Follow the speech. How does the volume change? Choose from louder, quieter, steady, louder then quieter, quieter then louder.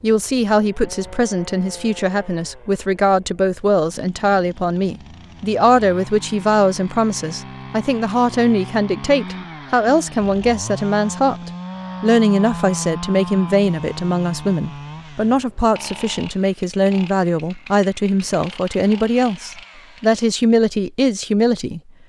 steady.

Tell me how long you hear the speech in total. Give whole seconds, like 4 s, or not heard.
22 s.